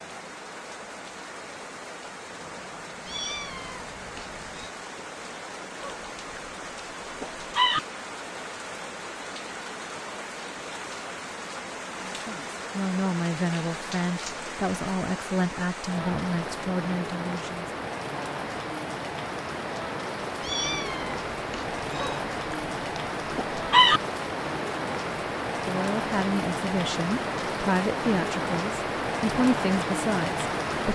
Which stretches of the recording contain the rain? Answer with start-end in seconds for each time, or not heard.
0.0-30.9.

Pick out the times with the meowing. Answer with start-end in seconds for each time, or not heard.
3.0-4.7, 20.4-22.2.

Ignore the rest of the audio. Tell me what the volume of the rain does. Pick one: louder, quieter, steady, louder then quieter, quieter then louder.
louder.